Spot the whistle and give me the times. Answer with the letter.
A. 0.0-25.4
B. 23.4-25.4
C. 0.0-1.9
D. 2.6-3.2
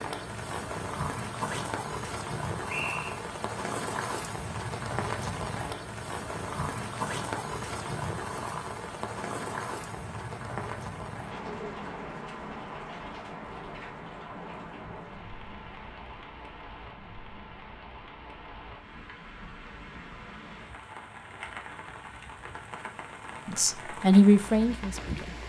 D.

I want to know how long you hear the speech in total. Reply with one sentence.
The speech can be heard for 2 seconds in total.